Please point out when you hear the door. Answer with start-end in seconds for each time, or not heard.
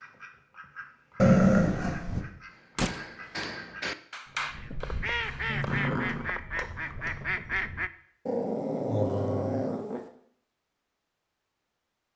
2.8-3.5.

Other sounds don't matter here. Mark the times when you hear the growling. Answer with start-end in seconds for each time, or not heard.
1.1-2.2, 5.5-6.3, 8.2-10.0.